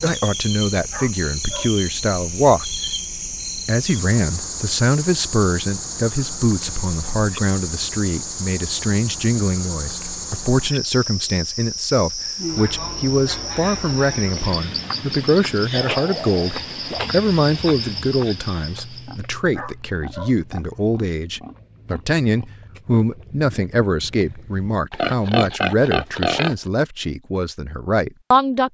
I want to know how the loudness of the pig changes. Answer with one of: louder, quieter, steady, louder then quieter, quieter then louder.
louder.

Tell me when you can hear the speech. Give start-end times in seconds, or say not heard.
0.0-2.7, 3.6-28.6.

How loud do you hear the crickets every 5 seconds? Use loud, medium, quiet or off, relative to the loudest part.
loud, loud, loud, loud, off, off.